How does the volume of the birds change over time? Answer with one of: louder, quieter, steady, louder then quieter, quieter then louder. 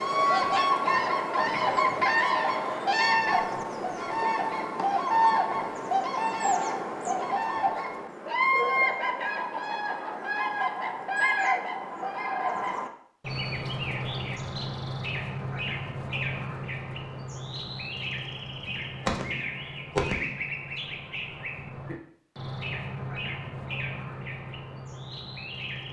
quieter.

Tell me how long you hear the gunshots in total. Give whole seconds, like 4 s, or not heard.
2 s.